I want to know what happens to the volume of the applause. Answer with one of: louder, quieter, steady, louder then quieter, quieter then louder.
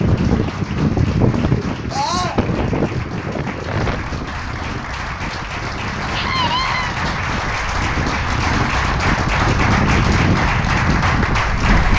louder.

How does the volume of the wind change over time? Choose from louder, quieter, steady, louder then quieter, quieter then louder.
quieter then louder.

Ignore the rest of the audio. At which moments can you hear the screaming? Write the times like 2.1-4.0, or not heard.
1.9-2.4, 6.1-7.0.